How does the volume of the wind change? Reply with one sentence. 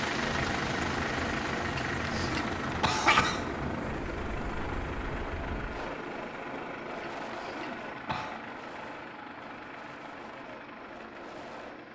The loudness of the wind goes down.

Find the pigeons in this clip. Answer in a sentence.
You can't hear the pigeons here.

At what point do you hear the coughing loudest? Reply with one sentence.
The volume of the coughing peaks at 3 seconds.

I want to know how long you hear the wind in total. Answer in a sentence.
You can hear the wind for 12 seconds altogether.